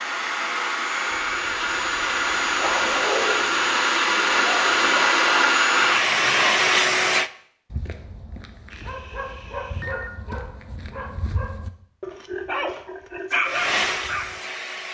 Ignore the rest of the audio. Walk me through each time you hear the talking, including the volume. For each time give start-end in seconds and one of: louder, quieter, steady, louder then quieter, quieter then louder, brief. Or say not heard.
not heard.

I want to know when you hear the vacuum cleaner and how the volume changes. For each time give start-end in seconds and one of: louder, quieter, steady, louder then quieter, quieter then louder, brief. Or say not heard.
0.0-7.3 louder
13.4-14.9 brief.